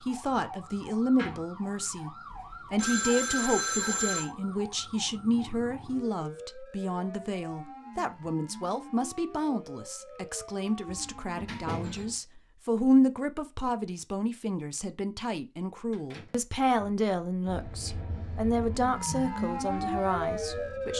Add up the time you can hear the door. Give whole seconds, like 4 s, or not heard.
3 s.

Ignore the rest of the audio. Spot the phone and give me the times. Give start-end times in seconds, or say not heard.
2.3-4.3, 10.8-12.1.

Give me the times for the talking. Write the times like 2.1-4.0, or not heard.
0.0-20.9.